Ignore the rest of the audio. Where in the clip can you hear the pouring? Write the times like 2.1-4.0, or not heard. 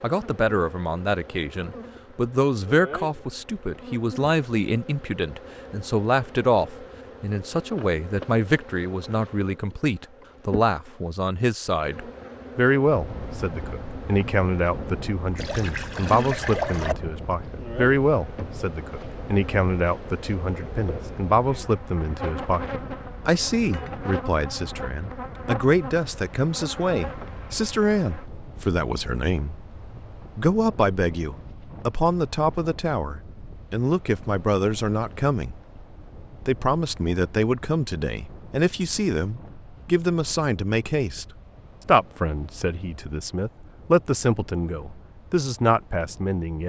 15.3-16.9.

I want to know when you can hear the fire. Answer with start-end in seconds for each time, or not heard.
not heard.